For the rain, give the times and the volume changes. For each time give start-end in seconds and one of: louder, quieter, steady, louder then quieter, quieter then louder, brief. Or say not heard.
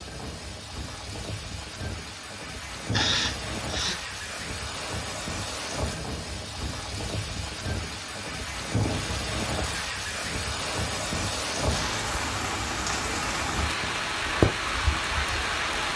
0.0-15.9 louder.